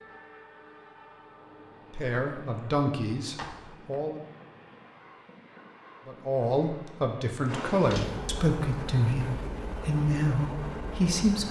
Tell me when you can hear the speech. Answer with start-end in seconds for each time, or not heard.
1.9-4.2, 6.0-11.4.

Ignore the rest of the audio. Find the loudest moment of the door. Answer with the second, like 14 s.
8 s.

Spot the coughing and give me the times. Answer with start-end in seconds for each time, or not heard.
not heard.